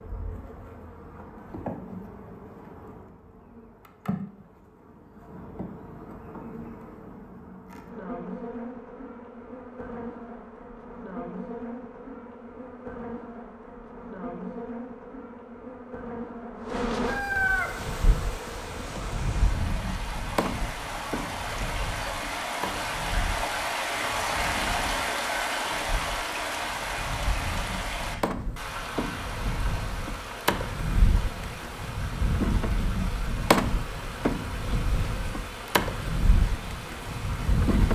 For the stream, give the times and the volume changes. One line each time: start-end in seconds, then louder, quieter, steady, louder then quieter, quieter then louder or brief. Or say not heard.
17.6-37.8 louder then quieter.